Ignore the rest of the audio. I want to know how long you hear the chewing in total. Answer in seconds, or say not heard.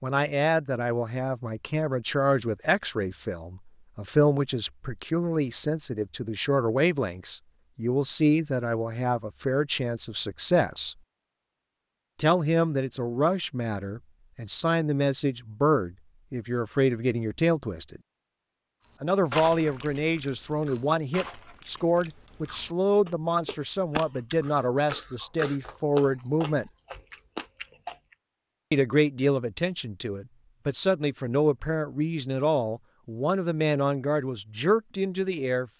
9 s.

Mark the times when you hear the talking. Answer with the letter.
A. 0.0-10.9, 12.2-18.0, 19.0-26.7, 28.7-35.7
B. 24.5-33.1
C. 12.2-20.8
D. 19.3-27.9
A.